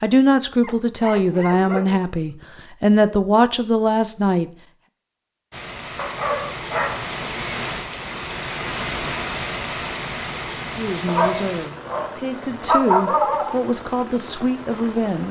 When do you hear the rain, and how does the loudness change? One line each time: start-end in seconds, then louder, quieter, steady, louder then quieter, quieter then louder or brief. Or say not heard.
5.5-15.2 quieter.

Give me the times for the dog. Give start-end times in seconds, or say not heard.
0.6-2.6, 6.0-7.2, 11.1-13.6.